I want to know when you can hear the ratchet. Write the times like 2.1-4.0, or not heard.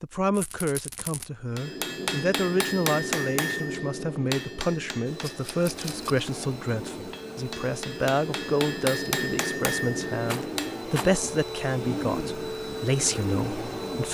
not heard.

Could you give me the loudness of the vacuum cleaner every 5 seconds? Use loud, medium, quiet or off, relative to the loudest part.
off, medium, loud.